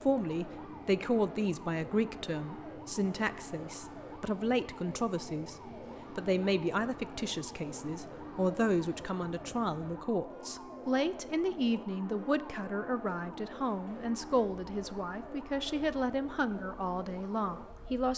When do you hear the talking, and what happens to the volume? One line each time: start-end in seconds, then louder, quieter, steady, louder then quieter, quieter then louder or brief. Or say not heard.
0.0-18.1 steady.